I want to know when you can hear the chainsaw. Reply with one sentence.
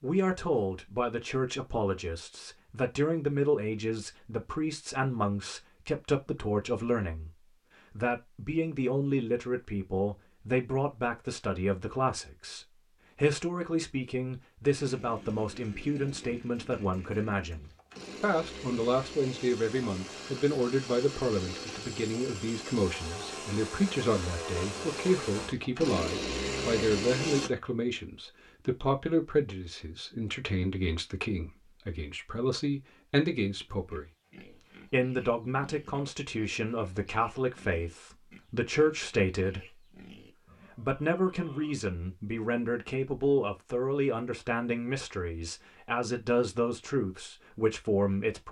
You can hear the chainsaw from 14.8 to 27.5 s.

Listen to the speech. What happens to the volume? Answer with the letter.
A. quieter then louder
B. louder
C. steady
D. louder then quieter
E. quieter
C.